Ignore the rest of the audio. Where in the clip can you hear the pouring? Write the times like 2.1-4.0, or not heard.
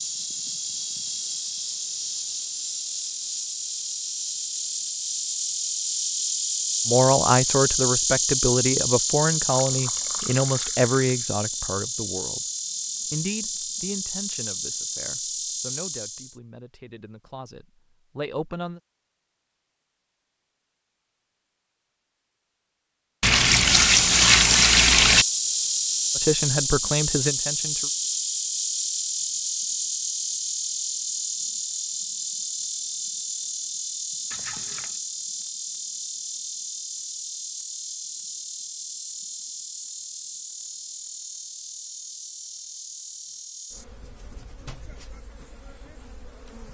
9.5-11.1, 23.2-25.2, 34.3-35.0.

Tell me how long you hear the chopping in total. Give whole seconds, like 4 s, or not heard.
not heard.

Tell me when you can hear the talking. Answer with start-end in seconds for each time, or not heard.
6.8-12.4, 13.1-18.8, 26.1-27.9.